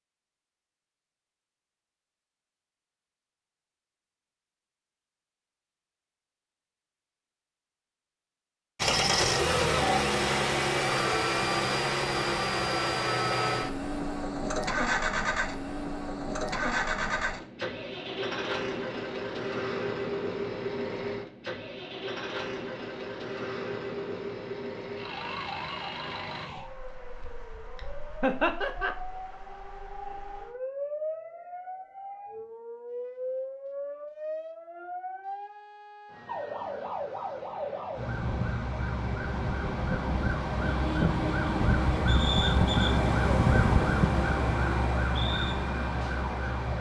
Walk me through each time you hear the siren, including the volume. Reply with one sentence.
You can hear the siren from 25.0 to 46.7 s, getting louder.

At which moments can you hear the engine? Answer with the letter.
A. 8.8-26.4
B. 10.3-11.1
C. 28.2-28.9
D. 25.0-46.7
A.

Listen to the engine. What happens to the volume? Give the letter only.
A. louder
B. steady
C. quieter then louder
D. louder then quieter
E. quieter
E.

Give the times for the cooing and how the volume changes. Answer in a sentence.
You can't hear the cooing here.